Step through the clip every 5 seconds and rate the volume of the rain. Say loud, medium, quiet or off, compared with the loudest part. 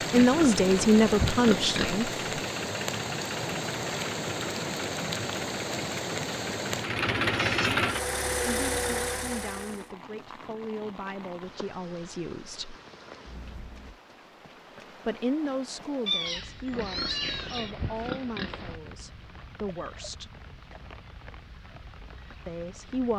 loud, loud, quiet, quiet, quiet.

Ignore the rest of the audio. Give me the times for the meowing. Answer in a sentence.
You can hear the meowing from 7.3 to 7.8 s and from 16.1 to 17.8 s.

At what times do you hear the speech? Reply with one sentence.
You can hear the speech from 0.1 to 2.2 s, from 8.4 to 12.8 s, from 15.1 to 20.4 s and from 22.4 to 23.1 s.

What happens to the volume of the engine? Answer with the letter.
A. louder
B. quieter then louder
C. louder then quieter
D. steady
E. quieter
A.